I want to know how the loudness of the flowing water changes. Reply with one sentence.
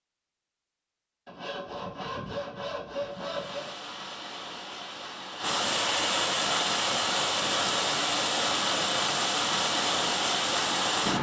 The volume of the flowing water goes up.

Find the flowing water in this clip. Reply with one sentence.
You can hear the flowing water from 3.0 to 11.1 s.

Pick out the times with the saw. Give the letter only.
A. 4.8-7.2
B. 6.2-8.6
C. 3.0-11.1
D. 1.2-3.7
D.